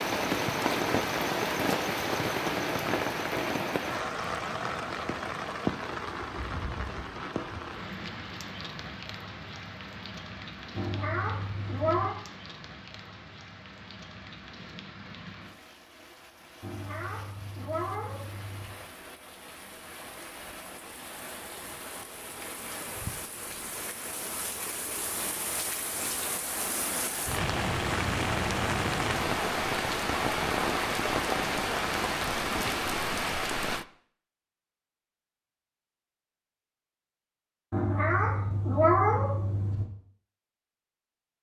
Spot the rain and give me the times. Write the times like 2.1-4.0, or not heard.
0.0-33.9.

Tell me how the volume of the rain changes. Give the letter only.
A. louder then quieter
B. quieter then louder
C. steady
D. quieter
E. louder
B.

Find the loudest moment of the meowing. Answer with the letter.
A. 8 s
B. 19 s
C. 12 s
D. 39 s
D.